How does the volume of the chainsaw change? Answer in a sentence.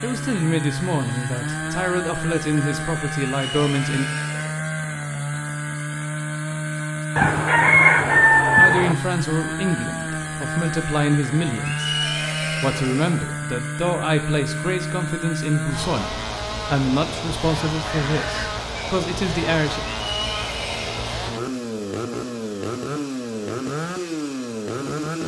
The loudness of the chainsaw stays about the same.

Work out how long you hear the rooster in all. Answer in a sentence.
You can hear the rooster for 3 seconds altogether.